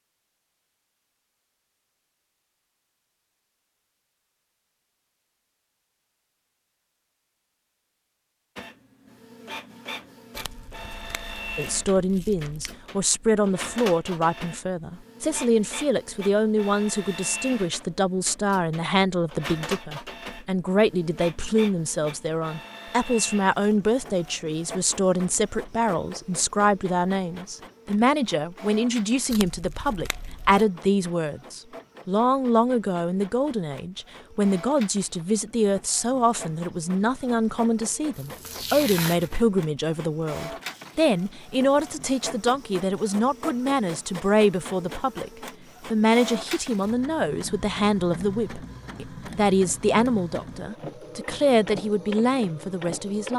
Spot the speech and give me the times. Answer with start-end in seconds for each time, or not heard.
11.6-53.3.